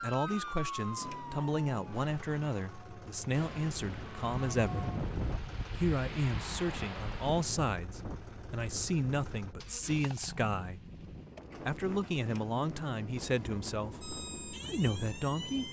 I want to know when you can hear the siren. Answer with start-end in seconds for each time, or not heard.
0.0-5.0, 14.0-15.6.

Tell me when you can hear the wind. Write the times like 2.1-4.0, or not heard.
3.3-15.6.